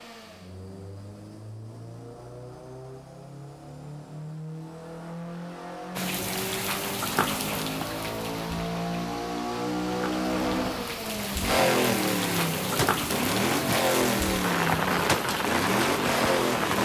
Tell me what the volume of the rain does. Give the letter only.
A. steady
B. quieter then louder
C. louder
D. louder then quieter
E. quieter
B.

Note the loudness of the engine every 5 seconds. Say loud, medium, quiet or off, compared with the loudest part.
quiet, medium, loud, loud.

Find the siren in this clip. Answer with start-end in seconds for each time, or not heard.
not heard.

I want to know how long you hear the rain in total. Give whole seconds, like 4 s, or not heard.
11 s.